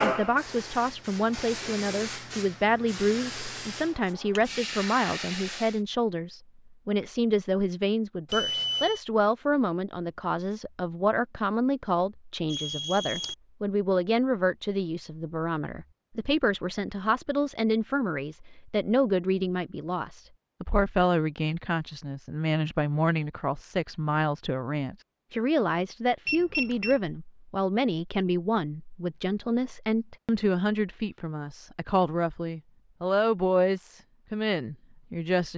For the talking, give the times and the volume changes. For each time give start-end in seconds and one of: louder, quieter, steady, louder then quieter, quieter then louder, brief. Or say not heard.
0.0-35.5 steady.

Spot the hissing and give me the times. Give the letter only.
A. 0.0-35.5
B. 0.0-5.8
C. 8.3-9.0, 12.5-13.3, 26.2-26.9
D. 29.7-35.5
B.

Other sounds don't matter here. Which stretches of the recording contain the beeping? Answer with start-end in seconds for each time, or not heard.
8.3-9.0, 12.5-13.3, 26.2-26.9.